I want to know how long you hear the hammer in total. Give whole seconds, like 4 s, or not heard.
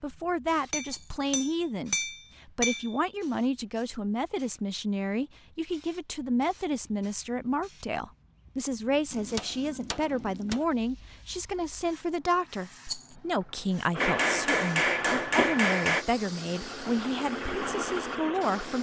6 s.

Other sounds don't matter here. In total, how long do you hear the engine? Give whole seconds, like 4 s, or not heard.
5 s.